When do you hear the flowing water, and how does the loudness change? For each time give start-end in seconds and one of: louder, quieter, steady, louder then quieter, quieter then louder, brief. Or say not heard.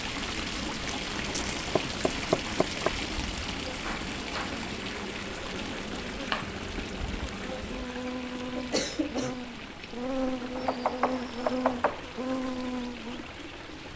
0.0-13.9 quieter.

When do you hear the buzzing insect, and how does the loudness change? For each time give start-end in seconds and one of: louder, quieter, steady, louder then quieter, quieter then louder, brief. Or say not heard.
0.0-13.9 louder.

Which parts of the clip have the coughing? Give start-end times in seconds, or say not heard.
8.6-9.3.